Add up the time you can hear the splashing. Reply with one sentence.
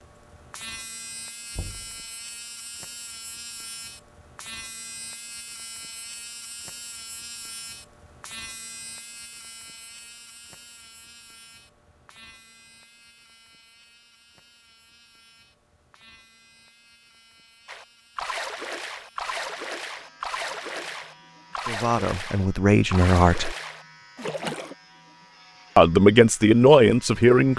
You can hear the splashing for 7 seconds altogether.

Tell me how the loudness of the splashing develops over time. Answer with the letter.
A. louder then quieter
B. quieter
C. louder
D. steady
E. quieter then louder
D.